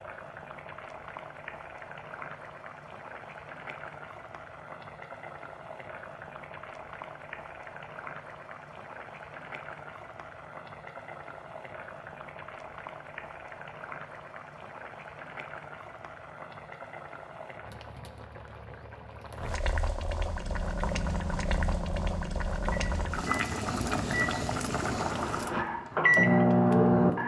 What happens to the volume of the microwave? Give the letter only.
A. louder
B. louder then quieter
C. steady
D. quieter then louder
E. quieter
A.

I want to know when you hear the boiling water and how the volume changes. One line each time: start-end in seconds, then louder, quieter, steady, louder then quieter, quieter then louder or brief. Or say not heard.
0.0-27.2 louder.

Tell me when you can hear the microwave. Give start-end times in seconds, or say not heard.
20.2-27.2.